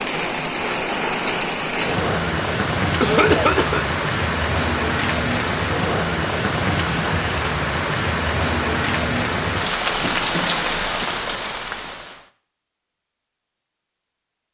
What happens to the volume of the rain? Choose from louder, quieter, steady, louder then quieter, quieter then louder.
steady.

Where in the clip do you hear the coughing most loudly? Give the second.
3 s.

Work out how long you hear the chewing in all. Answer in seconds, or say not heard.
not heard.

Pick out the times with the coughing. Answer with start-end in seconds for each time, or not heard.
3.0-3.9, 10.0-11.1.